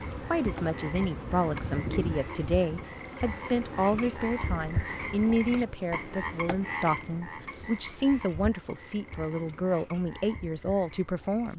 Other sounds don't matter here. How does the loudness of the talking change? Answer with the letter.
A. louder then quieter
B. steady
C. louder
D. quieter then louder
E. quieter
B.